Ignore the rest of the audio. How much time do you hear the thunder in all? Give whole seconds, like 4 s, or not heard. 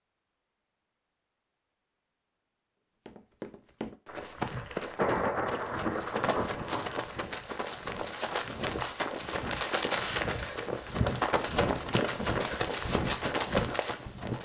3 s.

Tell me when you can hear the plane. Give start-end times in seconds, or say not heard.
not heard.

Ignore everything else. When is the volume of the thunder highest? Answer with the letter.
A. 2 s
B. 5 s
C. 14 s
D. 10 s
B.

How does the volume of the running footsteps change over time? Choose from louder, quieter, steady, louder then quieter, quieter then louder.
louder.